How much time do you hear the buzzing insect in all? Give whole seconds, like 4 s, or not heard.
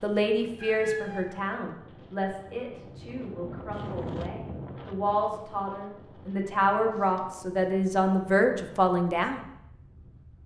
not heard.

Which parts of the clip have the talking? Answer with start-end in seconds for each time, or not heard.
0.0-9.4.